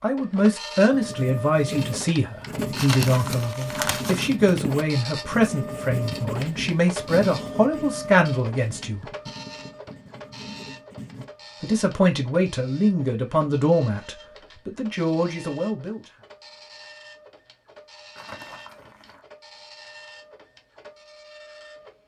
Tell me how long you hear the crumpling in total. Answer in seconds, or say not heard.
3 s.